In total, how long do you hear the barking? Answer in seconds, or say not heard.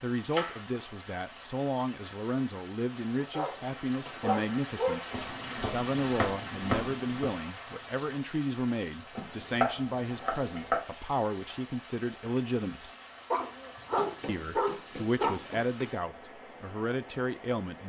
4 s.